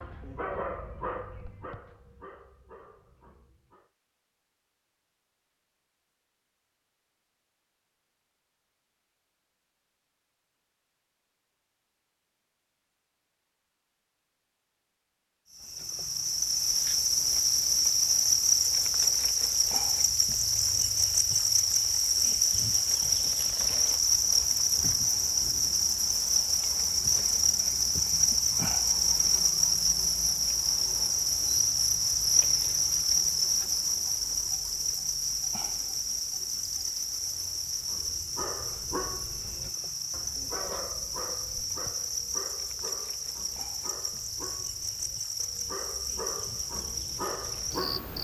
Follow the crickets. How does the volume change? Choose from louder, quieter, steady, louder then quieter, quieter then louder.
quieter.